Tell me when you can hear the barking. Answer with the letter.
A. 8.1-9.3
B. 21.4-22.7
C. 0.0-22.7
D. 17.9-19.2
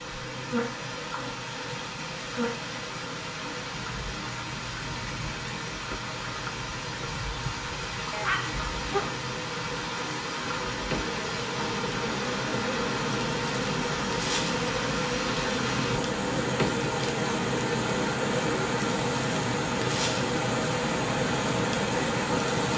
A.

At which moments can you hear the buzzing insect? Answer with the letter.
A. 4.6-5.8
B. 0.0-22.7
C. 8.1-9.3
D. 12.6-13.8
B.